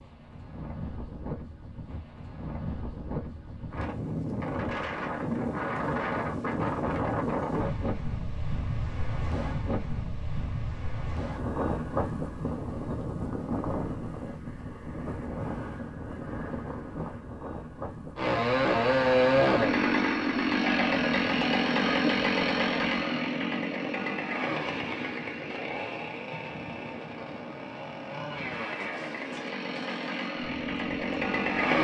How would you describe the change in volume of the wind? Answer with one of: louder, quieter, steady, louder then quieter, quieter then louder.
quieter.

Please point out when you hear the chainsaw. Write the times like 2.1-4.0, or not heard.
18.1-31.8.